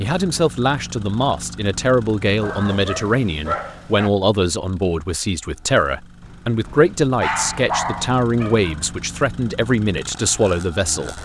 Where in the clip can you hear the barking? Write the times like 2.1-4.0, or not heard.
2.4-4.1, 6.2-9.0.